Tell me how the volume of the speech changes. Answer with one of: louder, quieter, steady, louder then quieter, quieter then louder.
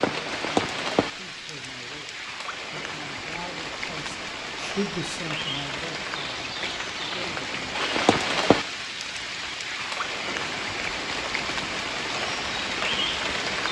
louder then quieter.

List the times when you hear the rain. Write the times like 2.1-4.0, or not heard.
0.0-13.6.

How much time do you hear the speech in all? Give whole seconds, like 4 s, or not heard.
8 s.